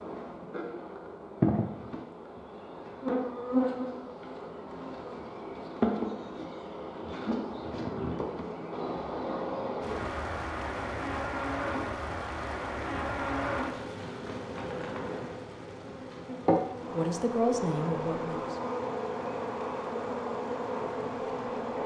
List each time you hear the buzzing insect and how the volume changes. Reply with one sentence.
The buzzing insect can be heard from 0.0 to 21.8 s, at a steady volume.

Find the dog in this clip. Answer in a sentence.
The dog can't be heard in this clip.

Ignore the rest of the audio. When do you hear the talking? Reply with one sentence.
The talking can be heard from 16.9 to 18.6 s.